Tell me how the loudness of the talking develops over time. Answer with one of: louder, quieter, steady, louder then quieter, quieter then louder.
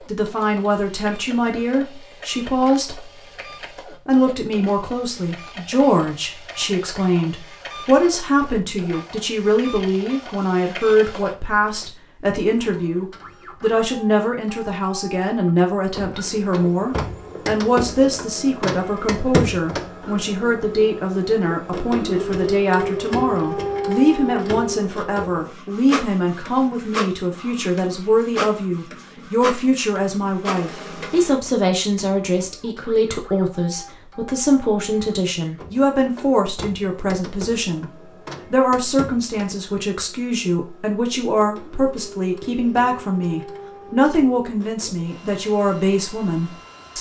steady.